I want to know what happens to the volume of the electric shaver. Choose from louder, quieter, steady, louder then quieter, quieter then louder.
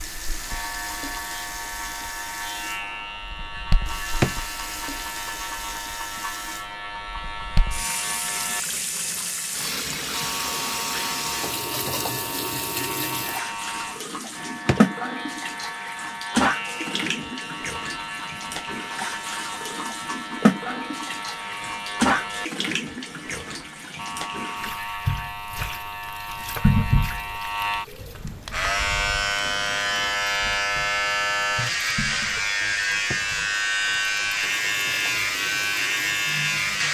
louder.